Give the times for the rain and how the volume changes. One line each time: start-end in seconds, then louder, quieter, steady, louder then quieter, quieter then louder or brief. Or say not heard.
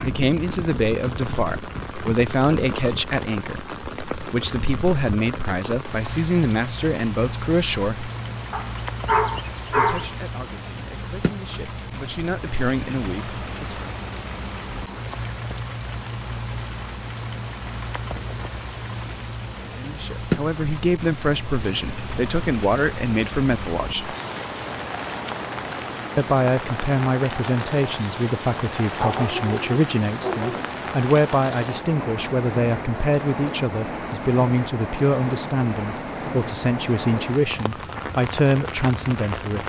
0.0-39.6 steady.